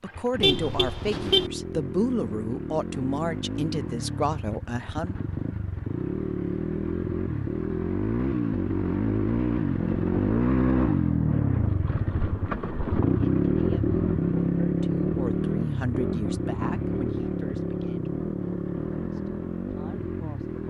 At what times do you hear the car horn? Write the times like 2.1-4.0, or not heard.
0.4-1.5.